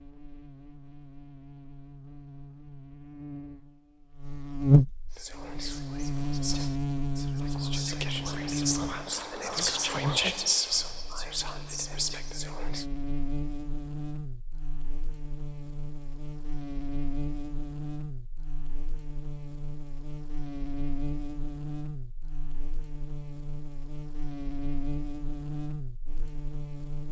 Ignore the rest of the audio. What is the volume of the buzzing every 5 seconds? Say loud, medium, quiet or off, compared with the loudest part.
loud, loud, medium, medium, medium, medium.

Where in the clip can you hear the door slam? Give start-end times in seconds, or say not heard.
not heard.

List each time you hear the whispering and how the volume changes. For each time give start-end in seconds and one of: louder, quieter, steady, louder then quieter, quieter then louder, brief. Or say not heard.
5.1-12.8 louder then quieter.